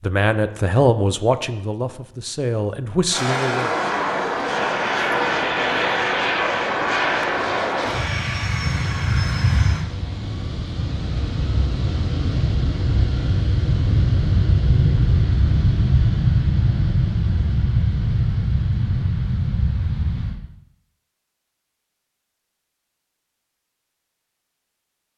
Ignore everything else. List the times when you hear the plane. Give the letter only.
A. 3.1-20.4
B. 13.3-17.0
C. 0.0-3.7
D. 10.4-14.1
A.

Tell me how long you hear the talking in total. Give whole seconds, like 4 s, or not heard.
4 s.